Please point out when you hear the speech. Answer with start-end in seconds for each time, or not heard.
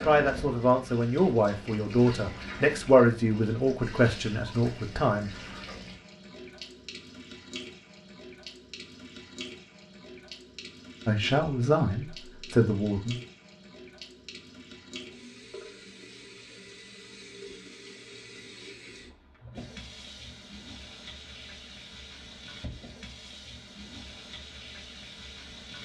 0.0-5.3, 11.1-13.2.